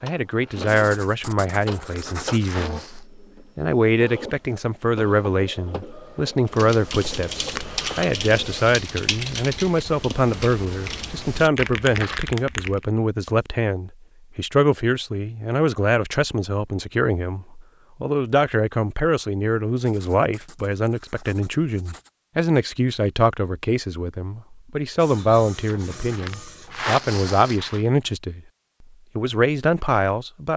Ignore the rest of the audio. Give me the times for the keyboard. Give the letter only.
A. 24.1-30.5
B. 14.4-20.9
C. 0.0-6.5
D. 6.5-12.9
D.